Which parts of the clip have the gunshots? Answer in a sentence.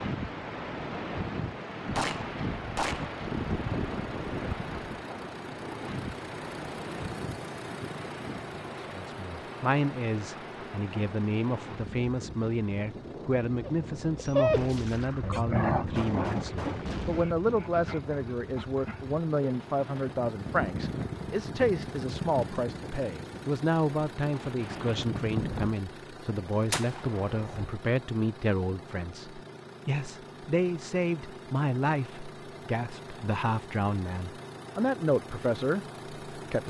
The gunshots can be heard from 1.9 to 5.0 s, from 14.5 to 17.3 s and from 26.7 to 27.8 s.